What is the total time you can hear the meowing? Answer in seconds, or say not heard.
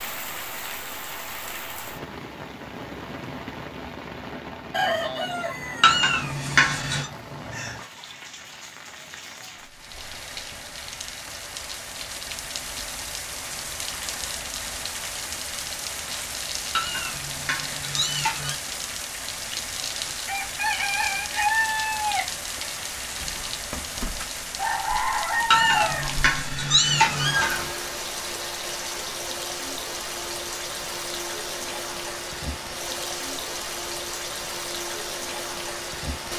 5 s.